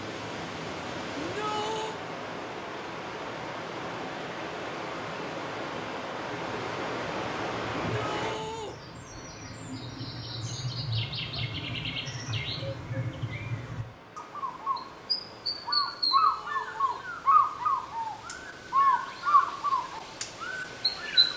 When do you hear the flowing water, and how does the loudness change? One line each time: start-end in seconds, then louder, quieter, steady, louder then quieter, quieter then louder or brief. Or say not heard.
0.0-16.1 quieter.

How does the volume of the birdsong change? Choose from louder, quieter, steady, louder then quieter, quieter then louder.
louder.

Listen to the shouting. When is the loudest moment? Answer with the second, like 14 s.
2 s.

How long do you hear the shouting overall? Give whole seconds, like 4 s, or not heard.
3 s.